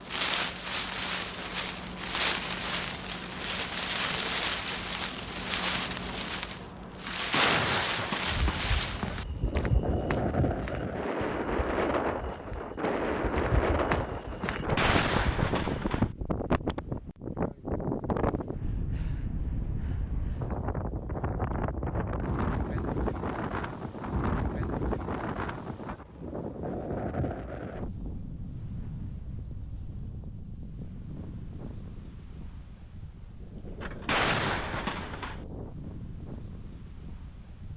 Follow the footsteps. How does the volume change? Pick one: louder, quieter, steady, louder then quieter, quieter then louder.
quieter then louder.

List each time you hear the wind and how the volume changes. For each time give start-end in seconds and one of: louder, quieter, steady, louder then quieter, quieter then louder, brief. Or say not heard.
0.0-37.7 quieter.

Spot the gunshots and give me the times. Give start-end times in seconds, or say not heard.
7.2-8.4, 14.5-16.1, 33.8-35.4.